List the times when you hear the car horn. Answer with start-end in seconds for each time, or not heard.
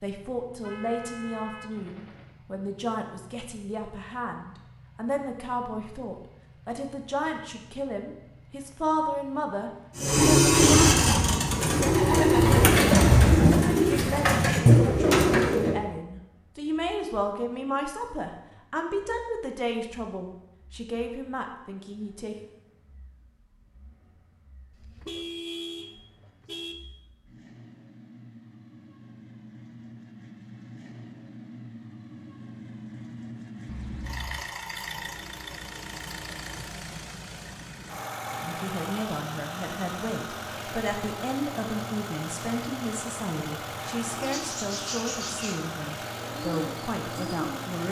0.6-2.4, 24.7-26.8, 33.6-34.4.